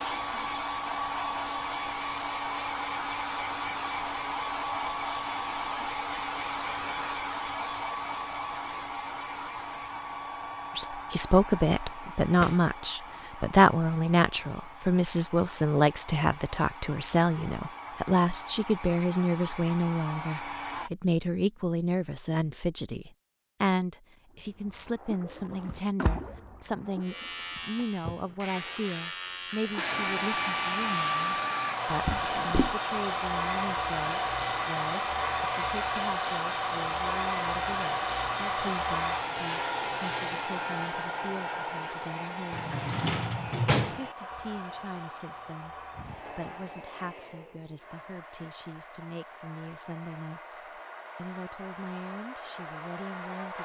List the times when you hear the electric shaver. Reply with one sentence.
The electric shaver can be heard from 27.0 to 40.5 s.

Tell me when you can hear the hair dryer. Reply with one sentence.
The hair dryer can be heard from 0.0 to 20.9 s and from 29.8 to 53.6 s.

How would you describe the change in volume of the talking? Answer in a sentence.
The volume of the talking goes down.